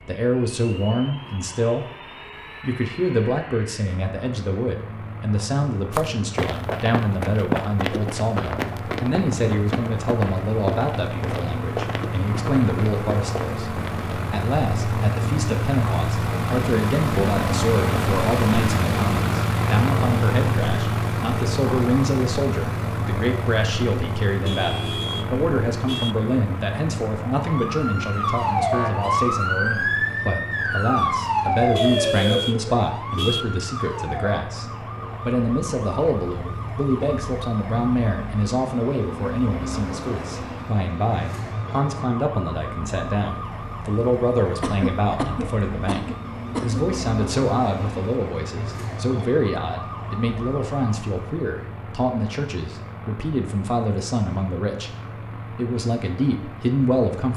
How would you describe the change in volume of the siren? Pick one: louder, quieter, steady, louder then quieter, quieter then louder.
quieter.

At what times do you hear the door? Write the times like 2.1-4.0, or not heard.
not heard.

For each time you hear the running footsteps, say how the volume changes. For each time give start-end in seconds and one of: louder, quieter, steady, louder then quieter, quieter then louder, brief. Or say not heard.
5.9-14.2 quieter.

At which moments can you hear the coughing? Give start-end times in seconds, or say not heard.
44.6-46.8.